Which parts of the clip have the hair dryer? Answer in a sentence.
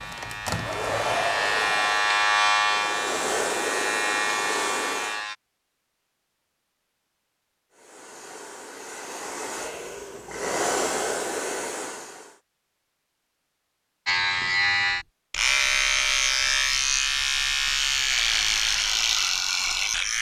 The hair dryer can be heard from 0.0 to 5.2 s and from 7.7 to 12.4 s.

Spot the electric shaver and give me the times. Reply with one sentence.
You can hear the electric shaver from 0.0 to 5.3 s and from 14.1 to 20.1 s.